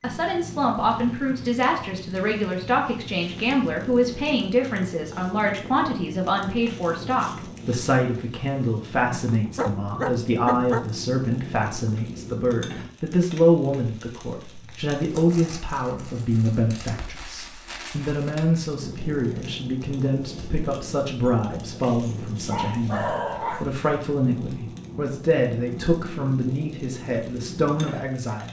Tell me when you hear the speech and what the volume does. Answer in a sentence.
The speech can be heard from 0.0 to 28.4 s, at a steady volume.